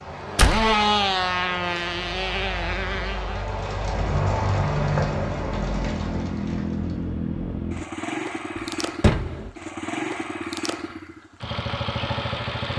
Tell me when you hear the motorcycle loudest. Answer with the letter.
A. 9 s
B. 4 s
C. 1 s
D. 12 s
C.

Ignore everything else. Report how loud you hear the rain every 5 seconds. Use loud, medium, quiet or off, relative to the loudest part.
loud, loud, off.